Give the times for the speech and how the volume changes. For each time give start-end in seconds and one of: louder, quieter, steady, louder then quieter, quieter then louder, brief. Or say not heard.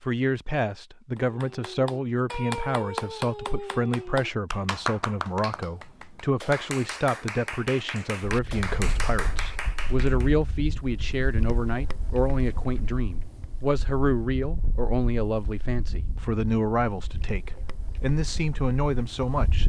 0.0-19.6 steady.